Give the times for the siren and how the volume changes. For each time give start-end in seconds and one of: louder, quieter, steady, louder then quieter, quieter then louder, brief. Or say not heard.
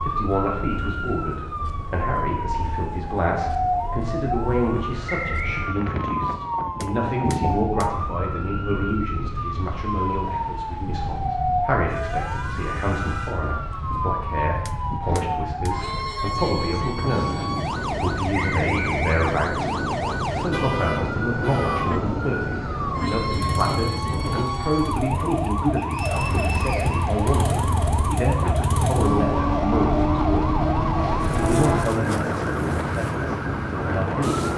0.0-34.5 steady.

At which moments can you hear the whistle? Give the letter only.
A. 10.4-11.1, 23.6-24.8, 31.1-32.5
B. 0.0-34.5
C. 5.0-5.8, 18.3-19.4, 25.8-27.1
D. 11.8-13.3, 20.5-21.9
C.